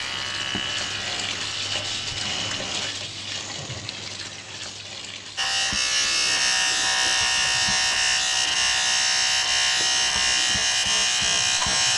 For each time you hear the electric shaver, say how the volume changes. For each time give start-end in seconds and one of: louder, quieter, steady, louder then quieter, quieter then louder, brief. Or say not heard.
0.0-3.0 brief
5.3-11.9 steady.